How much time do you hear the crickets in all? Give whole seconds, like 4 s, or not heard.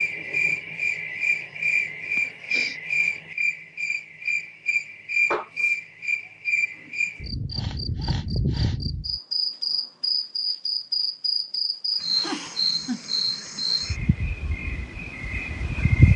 16 s.